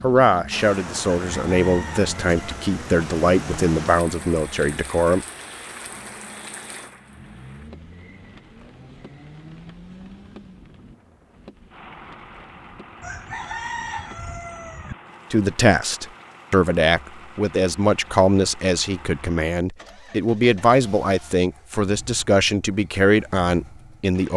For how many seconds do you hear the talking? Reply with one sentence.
The talking can be heard for 14 seconds in total.